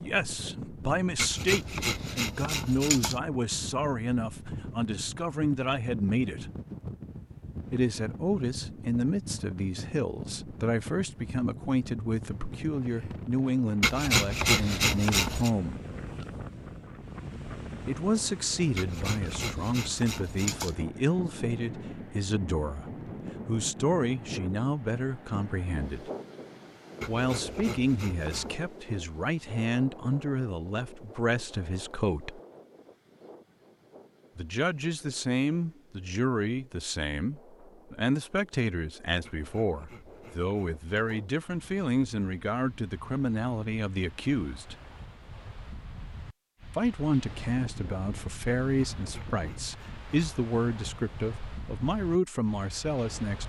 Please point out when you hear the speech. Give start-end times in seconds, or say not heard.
0.0-6.5, 7.7-15.8, 17.9-26.1, 27.1-32.4, 34.4-44.8, 46.8-53.4.